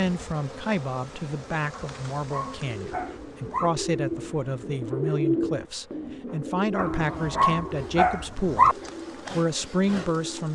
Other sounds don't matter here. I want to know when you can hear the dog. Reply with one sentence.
You can hear the dog from 1.7 to 3.7 s and from 6.8 to 8.8 s.